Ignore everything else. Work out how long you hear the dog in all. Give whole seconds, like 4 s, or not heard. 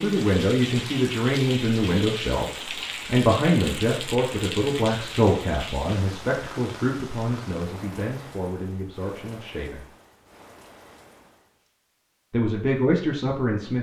not heard.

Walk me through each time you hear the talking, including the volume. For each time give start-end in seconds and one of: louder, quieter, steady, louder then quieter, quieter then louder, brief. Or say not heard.
0.0-9.8 quieter
12.3-13.7 brief.